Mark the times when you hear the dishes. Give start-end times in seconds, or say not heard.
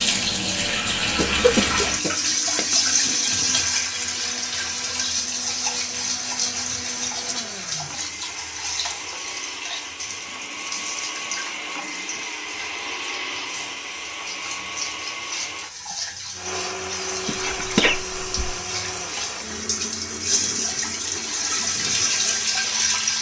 not heard.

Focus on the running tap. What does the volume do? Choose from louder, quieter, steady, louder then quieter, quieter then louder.
quieter then louder.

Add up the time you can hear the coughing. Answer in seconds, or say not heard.
3 s.